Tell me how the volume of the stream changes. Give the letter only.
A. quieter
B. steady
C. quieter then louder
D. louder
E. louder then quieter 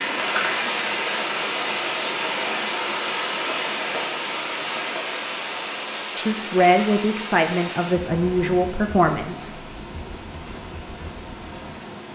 A.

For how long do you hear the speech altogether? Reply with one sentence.
The speech can be heard for 3 seconds in total.